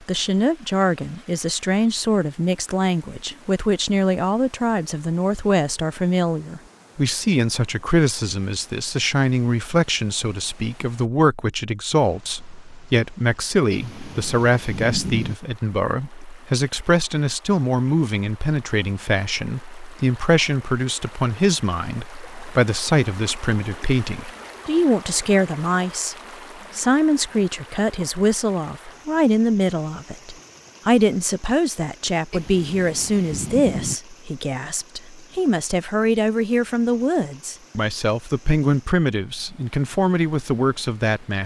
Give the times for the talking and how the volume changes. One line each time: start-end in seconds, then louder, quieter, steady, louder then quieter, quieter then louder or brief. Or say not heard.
0.1-26.1 steady
26.8-41.4 steady.